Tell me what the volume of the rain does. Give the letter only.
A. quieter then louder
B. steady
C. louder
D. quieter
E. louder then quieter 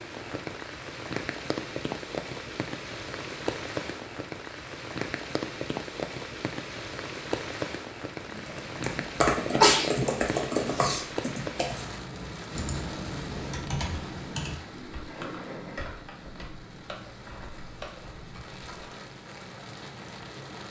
D.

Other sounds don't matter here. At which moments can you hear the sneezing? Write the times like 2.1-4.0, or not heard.
9.6-11.1.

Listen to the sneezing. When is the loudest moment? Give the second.
10 s.